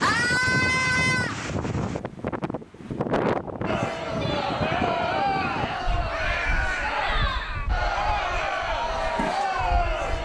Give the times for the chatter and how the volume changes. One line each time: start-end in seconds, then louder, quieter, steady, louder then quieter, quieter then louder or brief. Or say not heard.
3.6-10.2 steady.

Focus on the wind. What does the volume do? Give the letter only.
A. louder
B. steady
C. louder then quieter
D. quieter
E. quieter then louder
D.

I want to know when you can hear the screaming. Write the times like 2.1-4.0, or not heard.
0.0-1.4, 6.1-7.7.